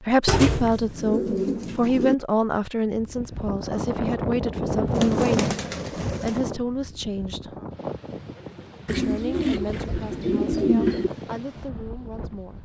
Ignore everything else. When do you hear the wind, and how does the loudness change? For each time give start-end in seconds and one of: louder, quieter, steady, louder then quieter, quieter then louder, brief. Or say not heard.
2.8-12.6 quieter.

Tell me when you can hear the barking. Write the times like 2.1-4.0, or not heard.
not heard.